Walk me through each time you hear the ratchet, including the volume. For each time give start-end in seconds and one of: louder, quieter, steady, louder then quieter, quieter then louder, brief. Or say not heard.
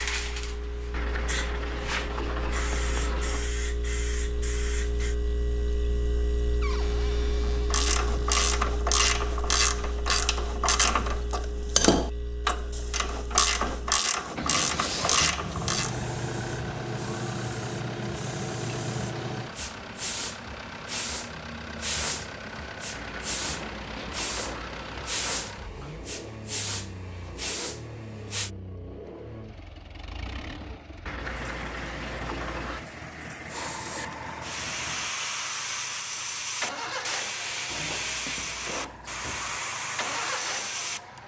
7.4-15.9 steady.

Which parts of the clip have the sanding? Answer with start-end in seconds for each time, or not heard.
0.9-3.5, 22.9-25.4, 31.1-32.9.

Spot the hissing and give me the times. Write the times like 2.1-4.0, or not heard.
0.0-5.2, 14.8-28.5, 33.5-41.2.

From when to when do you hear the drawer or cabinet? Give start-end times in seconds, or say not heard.
6.6-8.3, 23.4-24.7, 37.6-39.6.